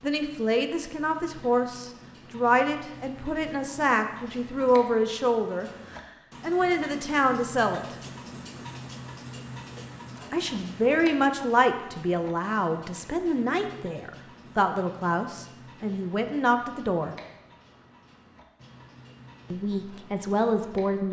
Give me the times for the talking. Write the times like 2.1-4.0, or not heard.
0.0-8.0, 10.3-17.1, 19.5-21.0.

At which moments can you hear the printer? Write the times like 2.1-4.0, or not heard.
not heard.